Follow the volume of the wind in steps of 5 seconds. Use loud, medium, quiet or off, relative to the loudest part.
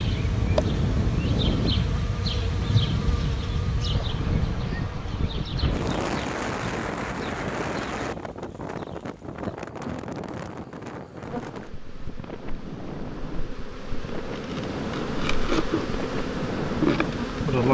loud, loud, medium, loud.